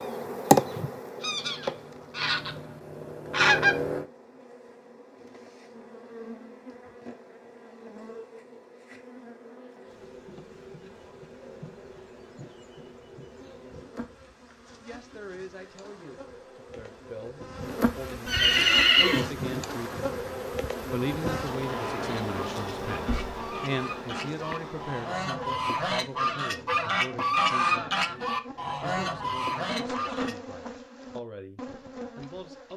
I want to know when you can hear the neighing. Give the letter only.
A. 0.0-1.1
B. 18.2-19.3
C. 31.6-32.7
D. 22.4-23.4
B.